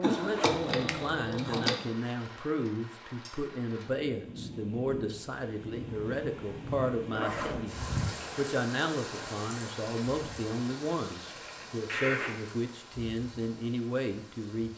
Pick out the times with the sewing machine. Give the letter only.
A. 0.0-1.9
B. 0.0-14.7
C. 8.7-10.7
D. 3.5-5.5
A.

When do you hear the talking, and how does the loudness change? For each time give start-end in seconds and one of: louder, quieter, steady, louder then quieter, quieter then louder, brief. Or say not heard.
0.0-14.7 steady.